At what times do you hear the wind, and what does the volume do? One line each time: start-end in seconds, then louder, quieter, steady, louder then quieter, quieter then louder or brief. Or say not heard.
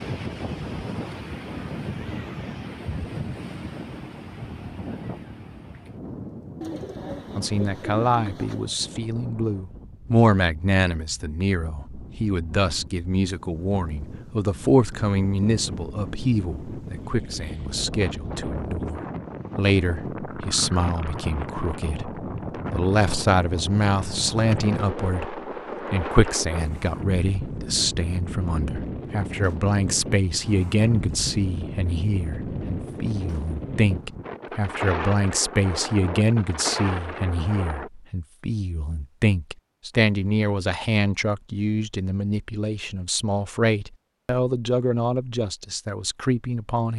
0.0-37.9 quieter then louder.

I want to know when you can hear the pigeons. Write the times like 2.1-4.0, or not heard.
6.6-8.8.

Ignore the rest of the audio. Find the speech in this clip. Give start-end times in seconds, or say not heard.
7.3-46.9.